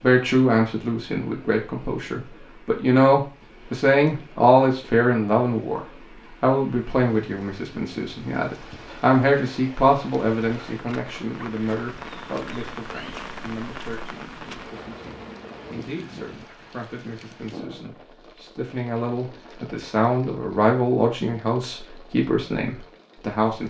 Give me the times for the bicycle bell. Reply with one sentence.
You can't hear the bicycle bell here.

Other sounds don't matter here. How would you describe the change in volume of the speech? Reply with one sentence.
The loudness of the speech goes down, then up.